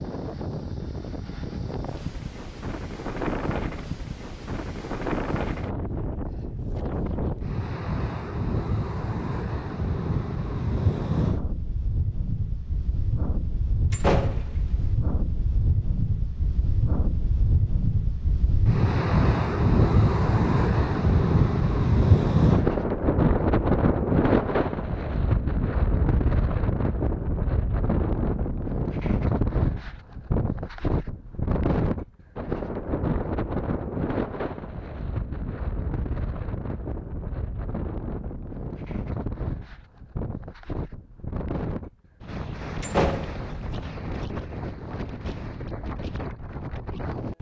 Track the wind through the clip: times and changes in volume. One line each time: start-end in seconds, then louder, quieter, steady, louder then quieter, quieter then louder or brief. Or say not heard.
0.0-47.3 louder then quieter.